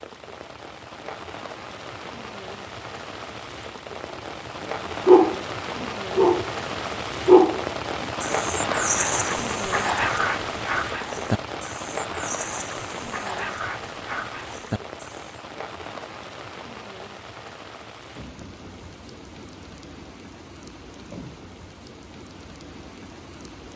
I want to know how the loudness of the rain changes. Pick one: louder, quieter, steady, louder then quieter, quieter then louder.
louder then quieter.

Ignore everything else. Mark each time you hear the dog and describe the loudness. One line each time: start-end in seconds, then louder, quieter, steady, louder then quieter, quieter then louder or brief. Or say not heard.
5.0-6.5 brief
7.2-15.4 quieter.